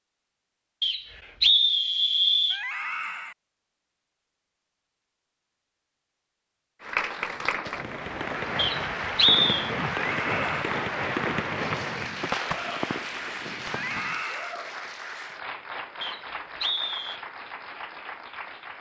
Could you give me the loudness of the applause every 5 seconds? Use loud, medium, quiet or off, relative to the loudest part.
off, loud, loud, medium.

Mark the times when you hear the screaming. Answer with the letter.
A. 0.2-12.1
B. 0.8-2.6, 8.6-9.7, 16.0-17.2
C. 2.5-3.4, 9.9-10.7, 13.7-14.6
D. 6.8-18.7
C.